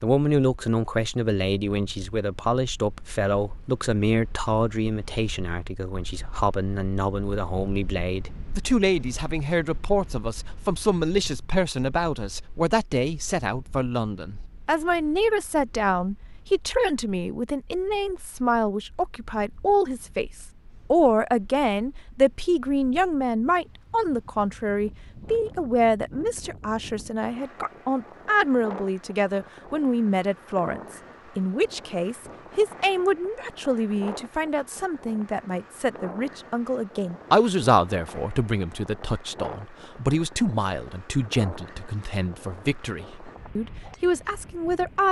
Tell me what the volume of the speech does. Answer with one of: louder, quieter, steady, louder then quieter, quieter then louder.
steady.